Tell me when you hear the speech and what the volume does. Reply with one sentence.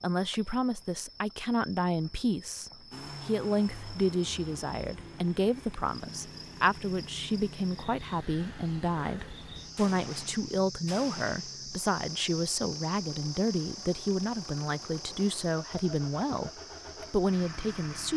You can hear the speech from 0.0 to 16.5 s, at a steady volume; and briefly from 17.1 to 18.1 s.